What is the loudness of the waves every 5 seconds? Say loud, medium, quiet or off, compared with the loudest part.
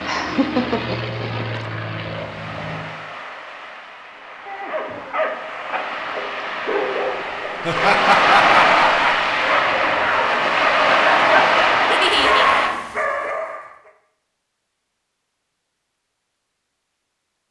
quiet, loud, loud, off.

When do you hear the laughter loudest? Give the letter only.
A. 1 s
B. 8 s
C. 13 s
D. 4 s
B.